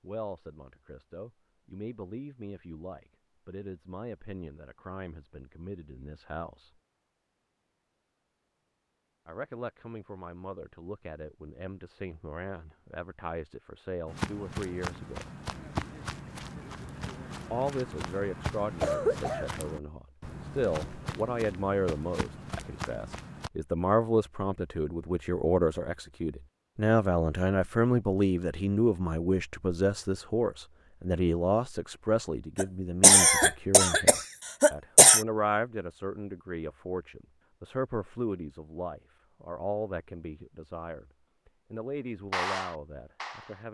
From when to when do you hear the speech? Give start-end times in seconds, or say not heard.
0.0-6.7, 9.2-15.3, 17.5-43.6.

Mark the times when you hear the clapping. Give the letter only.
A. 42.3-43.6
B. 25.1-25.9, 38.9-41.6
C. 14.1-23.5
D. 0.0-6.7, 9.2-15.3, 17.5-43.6
A.